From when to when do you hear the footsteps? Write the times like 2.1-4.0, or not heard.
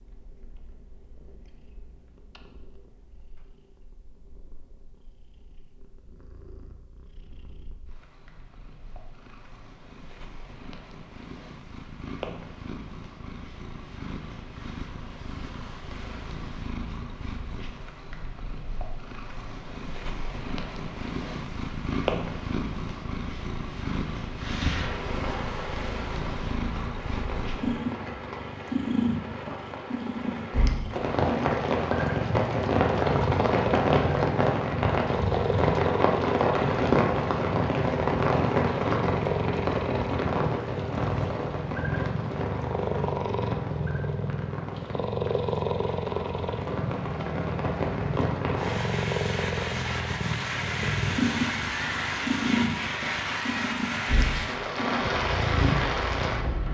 not heard.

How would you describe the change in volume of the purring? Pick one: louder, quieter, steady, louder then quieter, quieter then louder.
louder.